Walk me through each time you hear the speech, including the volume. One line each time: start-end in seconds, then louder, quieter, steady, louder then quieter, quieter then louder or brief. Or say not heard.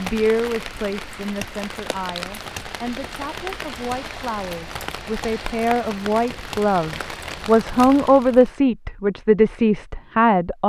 0.0-10.6 louder.